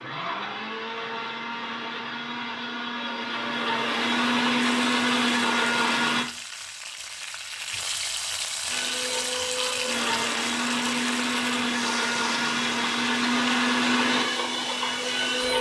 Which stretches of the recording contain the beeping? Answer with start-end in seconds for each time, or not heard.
not heard.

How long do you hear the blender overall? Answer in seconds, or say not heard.
13 s.